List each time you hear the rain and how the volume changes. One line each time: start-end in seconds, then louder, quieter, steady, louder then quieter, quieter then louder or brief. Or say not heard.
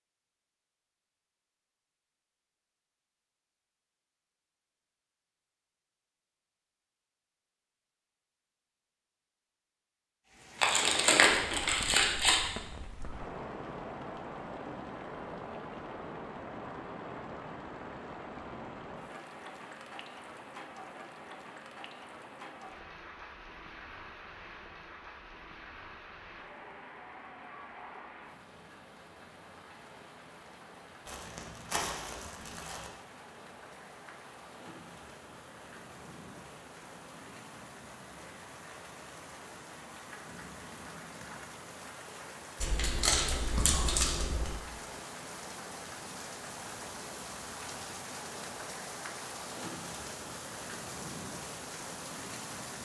10.2-52.8 quieter then louder.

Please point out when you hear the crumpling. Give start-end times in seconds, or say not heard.
10.6-12.4, 31.1-32.9, 42.6-44.5.